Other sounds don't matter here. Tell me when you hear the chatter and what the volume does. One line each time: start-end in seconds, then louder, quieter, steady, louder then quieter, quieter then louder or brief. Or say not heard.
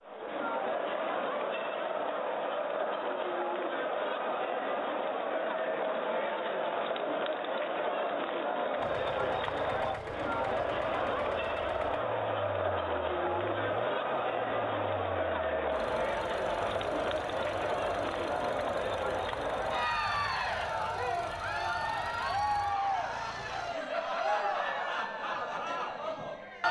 0.0-26.6 steady.